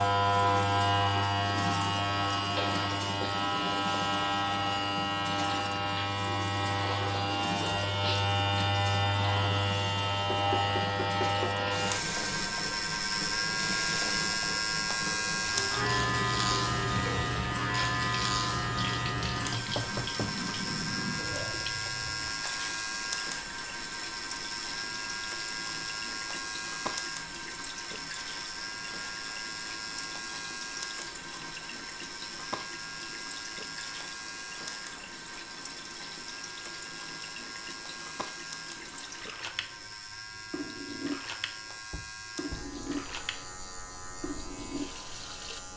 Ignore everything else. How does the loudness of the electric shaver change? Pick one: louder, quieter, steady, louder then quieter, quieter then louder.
quieter.